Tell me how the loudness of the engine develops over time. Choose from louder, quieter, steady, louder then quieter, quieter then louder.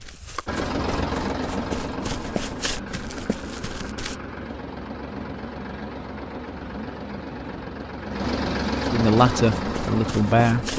quieter then louder.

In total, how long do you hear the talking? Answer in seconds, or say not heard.
2 s.